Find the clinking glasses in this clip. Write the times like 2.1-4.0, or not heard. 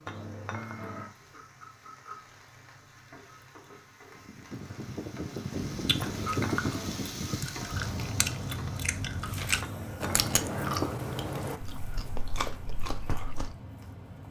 0.1-1.1, 6.0-7.0, 9.6-10.8.